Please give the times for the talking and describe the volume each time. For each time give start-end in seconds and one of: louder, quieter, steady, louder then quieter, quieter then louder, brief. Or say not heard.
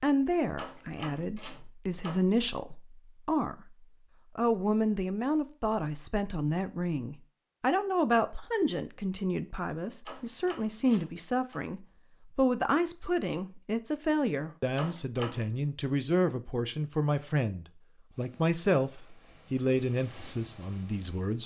0.0-21.4 steady.